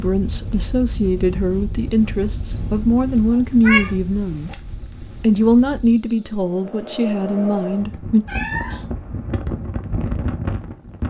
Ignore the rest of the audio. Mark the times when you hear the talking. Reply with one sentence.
The talking can be heard from 0.0 to 4.6 s and from 5.2 to 8.2 s.